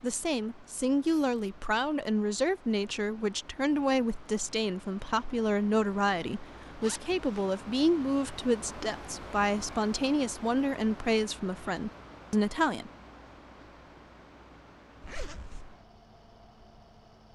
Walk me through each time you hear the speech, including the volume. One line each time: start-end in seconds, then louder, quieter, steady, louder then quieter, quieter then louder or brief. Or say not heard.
0.0-12.9 steady.